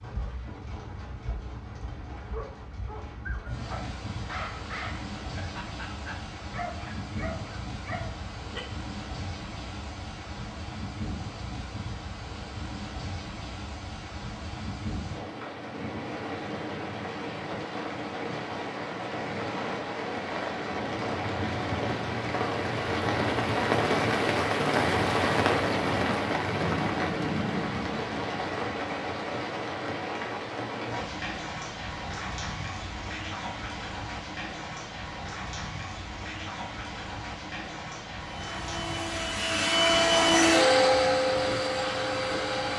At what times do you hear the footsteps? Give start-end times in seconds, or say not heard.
not heard.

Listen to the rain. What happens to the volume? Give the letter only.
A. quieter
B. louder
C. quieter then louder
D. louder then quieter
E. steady
D.